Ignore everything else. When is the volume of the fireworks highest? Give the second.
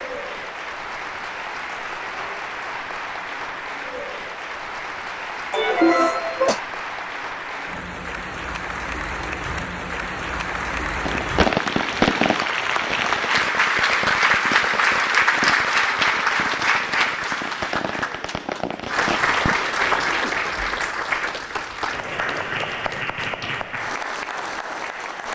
12 s.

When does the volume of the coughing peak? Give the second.
6 s.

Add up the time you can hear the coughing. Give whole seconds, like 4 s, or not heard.
2 s.